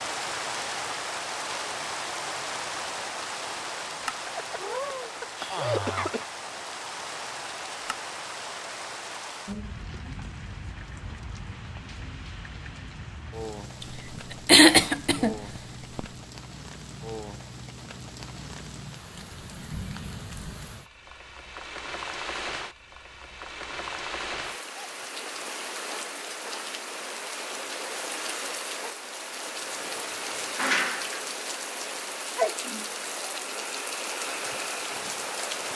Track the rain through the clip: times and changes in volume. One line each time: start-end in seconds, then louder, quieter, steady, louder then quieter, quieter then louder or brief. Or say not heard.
0.0-35.7 quieter then louder.